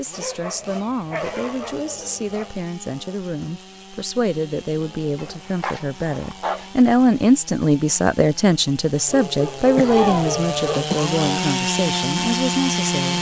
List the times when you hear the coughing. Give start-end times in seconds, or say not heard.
9.8-11.2.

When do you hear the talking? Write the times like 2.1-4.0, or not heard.
0.0-13.1.